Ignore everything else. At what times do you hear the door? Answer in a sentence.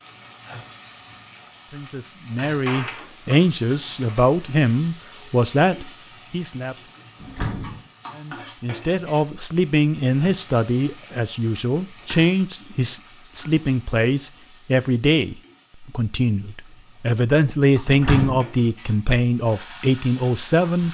The door can be heard from 2.6 to 4.2 s, from 7.2 to 7.8 s and from 17.9 to 18.4 s.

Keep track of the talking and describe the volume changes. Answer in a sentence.
The loudness of the talking stays about the same.